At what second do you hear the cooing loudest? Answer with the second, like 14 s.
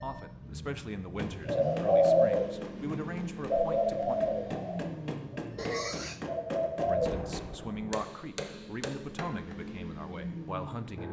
2 s.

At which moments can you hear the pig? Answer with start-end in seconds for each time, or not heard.
5.5-6.2.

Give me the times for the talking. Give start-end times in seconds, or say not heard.
0.0-4.2, 6.8-11.0.